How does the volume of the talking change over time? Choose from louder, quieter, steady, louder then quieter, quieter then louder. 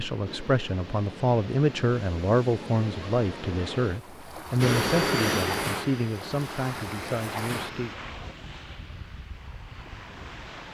quieter.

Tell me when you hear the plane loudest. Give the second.
5 s.